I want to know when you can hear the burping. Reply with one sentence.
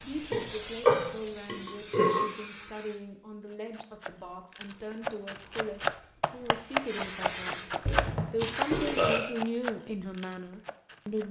The burping can be heard from 0.3 to 2.2 s and from 7.8 to 9.3 s.